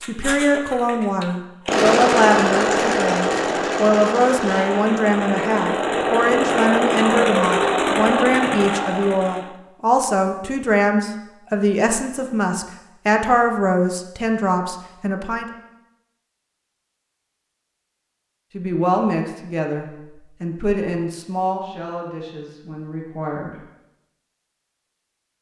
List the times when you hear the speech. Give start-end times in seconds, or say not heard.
0.0-15.4, 18.5-23.6.